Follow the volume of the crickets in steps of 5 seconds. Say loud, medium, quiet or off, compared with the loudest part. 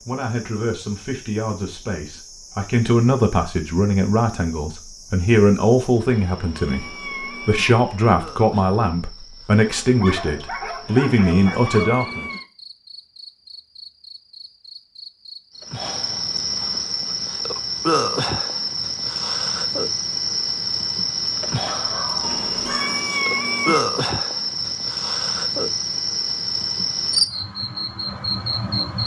quiet, quiet, quiet, loud, loud, loud.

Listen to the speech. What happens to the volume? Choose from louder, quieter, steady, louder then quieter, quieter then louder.
louder.